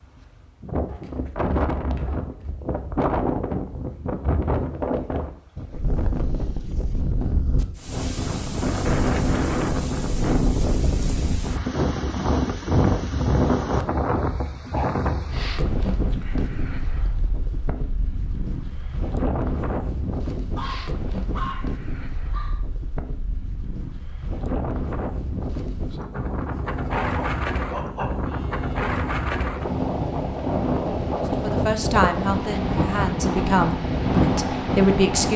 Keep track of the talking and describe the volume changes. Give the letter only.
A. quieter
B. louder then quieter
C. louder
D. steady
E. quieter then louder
E.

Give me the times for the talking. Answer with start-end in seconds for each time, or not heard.
31.2-35.3.